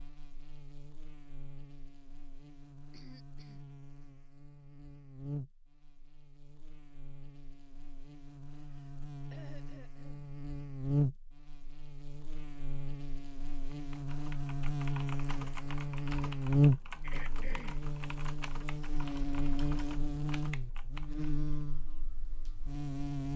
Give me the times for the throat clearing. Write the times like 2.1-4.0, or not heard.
2.9-3.6, 8.5-10.3, 17.0-17.9.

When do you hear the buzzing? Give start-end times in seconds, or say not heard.
0.0-23.3.